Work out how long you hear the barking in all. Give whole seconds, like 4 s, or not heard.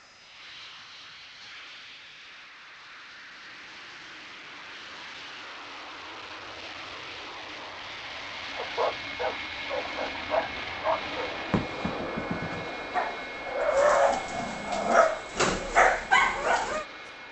8 s.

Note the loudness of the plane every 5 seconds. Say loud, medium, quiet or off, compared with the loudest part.
medium, loud, loud, medium.